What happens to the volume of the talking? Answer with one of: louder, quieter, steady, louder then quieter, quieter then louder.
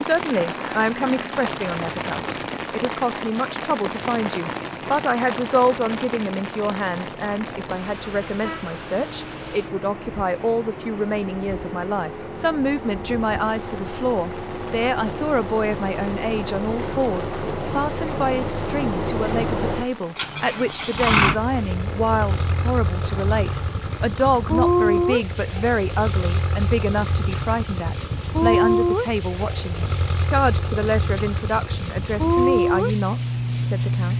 steady.